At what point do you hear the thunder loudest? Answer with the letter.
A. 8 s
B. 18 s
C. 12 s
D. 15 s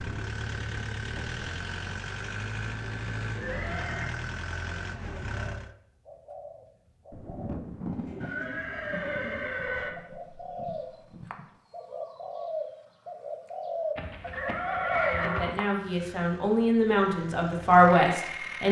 A.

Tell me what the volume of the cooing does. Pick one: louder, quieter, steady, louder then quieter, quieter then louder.
louder.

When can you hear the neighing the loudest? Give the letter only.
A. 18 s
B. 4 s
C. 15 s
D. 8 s
C.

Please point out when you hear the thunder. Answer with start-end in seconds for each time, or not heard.
7.1-11.5.